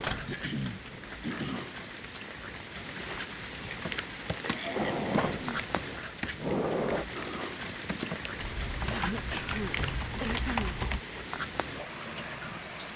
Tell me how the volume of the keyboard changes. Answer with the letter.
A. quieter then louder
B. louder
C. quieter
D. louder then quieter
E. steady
B.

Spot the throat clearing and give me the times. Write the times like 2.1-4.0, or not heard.
0.2-1.7, 4.5-5.7, 8.9-10.8.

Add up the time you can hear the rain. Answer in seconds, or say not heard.
13 s.